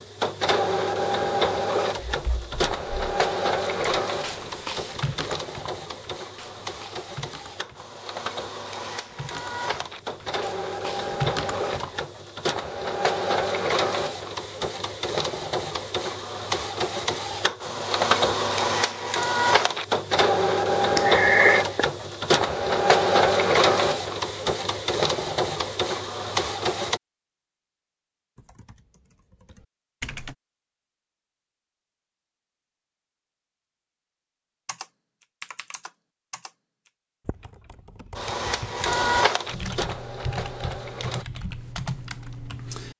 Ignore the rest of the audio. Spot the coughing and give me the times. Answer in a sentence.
The coughing can be heard from 20.9 to 21.8 s.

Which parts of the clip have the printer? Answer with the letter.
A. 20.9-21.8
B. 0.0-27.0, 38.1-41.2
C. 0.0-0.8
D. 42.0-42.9
B.